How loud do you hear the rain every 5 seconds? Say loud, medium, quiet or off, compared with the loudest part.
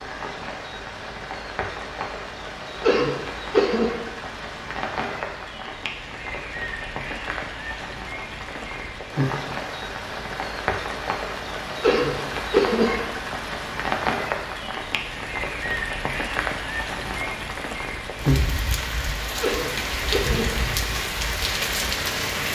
medium, medium, loud, loud, loud.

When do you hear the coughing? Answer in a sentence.
The coughing can be heard from 2.8 to 4.0 s, from 11.8 to 13.0 s and from 19.4 to 20.4 s.